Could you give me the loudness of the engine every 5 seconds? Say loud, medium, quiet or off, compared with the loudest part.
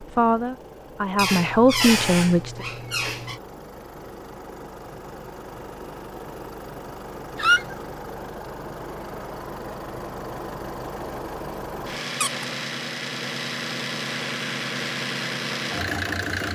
quiet, medium, loud, loud.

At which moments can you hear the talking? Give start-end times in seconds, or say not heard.
0.0-2.6.